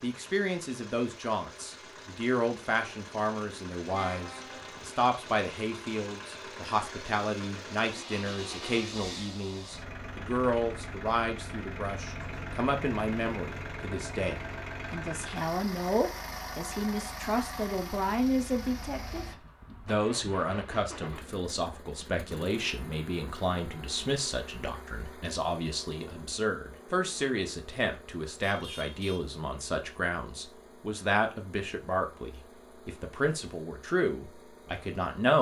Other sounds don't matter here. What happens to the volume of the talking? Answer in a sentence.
The volume of the talking stays about the same.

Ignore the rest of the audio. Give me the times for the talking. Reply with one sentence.
The talking can be heard from 0.0 to 35.3 s.